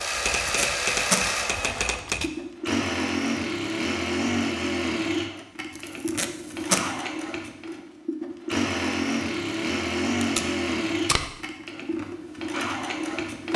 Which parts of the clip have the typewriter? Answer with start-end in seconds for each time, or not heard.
0.0-2.3.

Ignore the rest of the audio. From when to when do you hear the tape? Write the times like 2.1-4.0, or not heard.
0.4-1.2, 5.8-6.8, 10.2-11.3.